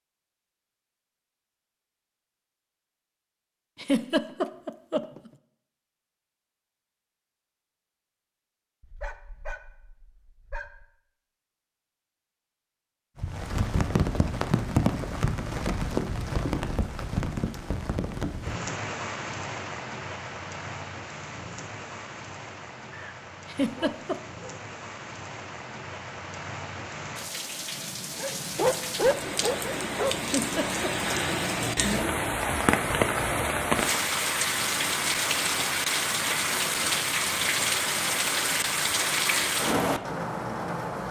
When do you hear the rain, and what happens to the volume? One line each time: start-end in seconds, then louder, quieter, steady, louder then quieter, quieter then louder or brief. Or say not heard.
13.2-41.0 quieter then louder.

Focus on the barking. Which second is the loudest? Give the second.
29 s.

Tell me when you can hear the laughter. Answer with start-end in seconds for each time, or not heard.
3.8-5.3, 23.4-24.2, 30.2-31.1.